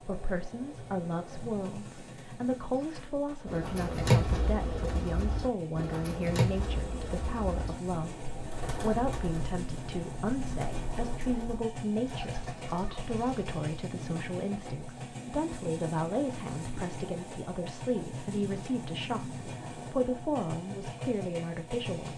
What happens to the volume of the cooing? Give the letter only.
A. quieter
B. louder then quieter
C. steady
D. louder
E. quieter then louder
A.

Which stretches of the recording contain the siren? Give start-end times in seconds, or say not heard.
not heard.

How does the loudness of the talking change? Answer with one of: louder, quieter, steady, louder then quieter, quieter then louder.
steady.